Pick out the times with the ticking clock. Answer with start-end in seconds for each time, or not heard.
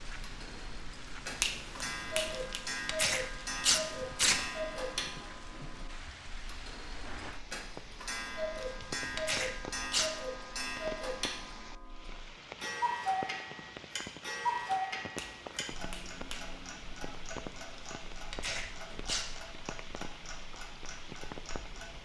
0.2-22.0.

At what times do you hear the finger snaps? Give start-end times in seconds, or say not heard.
1.4-2.6, 15.2-16.6.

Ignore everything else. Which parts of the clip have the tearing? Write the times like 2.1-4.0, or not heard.
2.3-4.5, 8.6-10.2, 17.7-19.3.